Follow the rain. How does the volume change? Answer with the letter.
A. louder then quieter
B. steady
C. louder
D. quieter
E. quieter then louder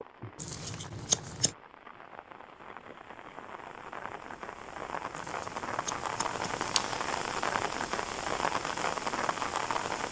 C.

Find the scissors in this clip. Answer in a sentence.
You can hear the scissors from 0.3 to 1.6 s and from 5.2 to 7.0 s.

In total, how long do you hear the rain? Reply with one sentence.
You can hear the rain for 10 seconds altogether.